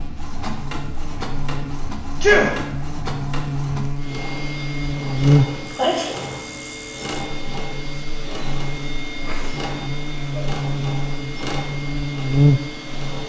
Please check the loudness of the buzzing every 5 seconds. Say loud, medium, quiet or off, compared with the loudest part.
medium, loud, loud.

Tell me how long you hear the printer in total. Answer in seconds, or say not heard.
13 s.